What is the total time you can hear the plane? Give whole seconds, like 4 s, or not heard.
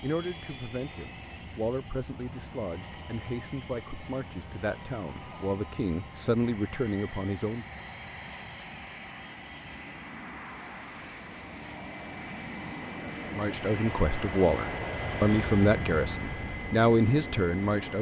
18 s.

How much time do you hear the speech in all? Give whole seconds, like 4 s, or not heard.
12 s.